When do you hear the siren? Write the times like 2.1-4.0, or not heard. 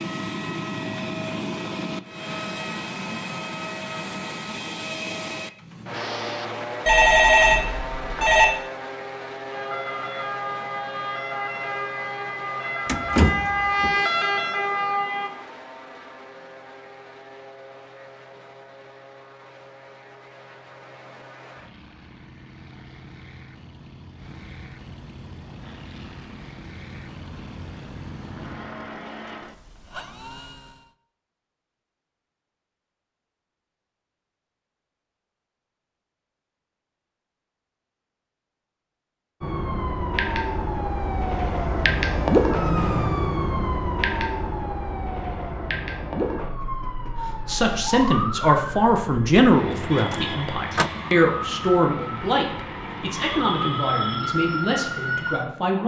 9.5-15.3, 39.4-55.8.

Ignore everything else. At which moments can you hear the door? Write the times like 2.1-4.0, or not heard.
12.8-13.9, 49.7-50.9.